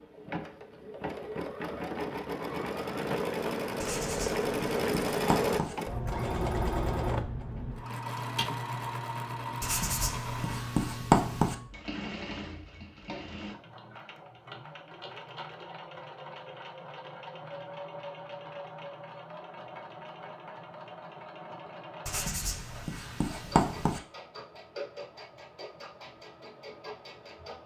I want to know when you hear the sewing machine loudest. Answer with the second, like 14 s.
5 s.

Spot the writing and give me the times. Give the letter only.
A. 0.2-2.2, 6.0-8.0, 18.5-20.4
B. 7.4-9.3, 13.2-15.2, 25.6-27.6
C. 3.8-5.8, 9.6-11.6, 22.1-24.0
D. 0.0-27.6
C.